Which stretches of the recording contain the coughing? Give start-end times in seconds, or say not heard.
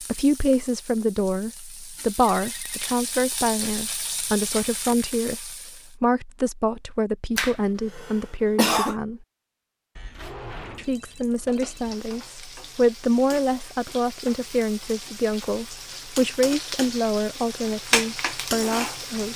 7.3-8.9.